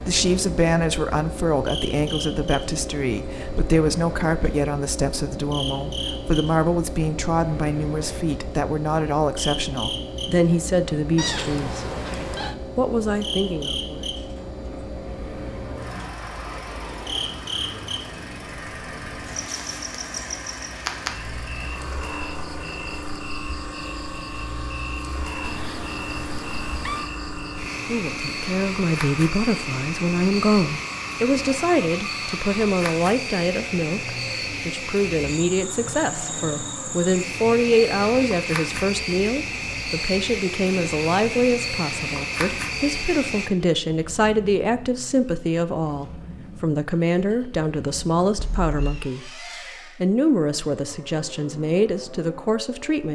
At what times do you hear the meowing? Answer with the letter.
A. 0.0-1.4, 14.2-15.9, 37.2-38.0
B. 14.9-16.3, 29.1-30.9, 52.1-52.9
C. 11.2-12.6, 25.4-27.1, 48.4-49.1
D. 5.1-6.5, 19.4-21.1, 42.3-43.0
C.